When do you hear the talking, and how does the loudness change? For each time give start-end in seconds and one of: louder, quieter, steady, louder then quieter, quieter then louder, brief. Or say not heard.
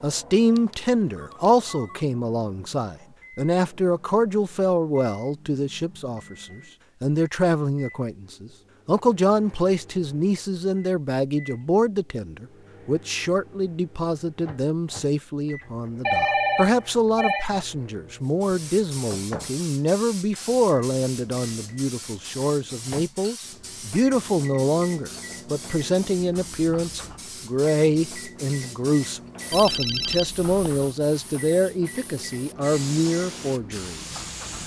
0.0-34.2 steady.